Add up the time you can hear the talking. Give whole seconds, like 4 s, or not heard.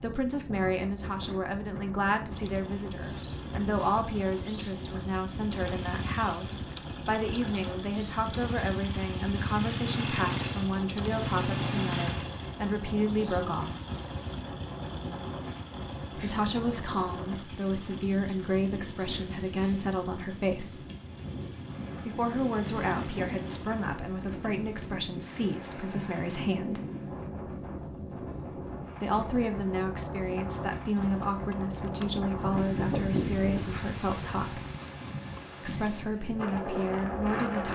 31 s.